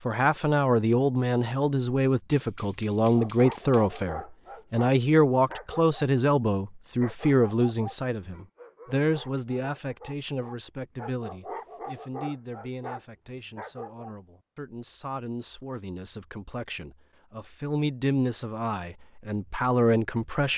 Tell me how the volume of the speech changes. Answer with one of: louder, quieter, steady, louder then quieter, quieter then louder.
quieter then louder.